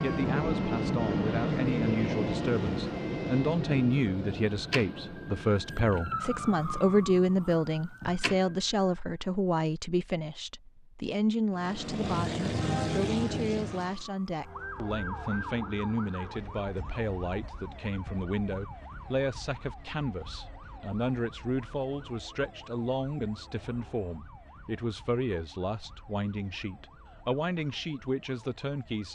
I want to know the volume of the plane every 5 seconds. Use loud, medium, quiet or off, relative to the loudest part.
loud, quiet, loud, off, off, off.